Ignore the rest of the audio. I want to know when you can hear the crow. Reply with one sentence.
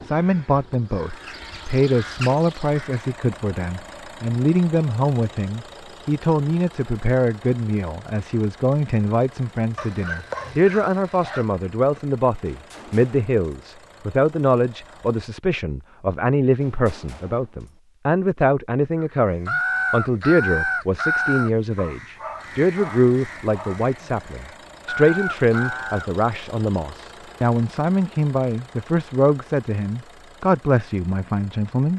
The crow can be heard from 0.0 to 3.1 s and from 19.0 to 26.1 s.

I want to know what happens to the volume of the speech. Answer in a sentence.
The loudness of the speech stays about the same.